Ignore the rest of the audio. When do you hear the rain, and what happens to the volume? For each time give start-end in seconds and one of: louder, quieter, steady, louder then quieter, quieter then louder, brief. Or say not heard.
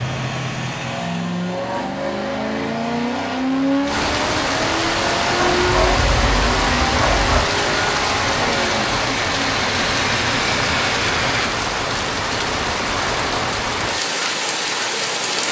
3.9-15.4 steady.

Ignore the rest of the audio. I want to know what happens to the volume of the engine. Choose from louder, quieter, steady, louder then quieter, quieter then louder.
steady.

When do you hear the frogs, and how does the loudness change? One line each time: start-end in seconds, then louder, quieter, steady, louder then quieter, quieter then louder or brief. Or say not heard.
not heard.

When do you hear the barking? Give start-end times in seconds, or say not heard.
5.3-7.4.